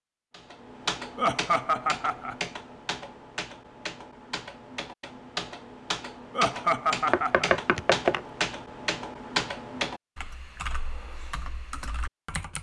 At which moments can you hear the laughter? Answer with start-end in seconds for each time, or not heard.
1.1-2.4, 6.3-7.5.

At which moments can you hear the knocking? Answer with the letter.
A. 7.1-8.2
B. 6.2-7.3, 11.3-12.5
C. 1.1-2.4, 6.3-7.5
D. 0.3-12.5
A.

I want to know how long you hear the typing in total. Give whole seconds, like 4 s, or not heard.
12 s.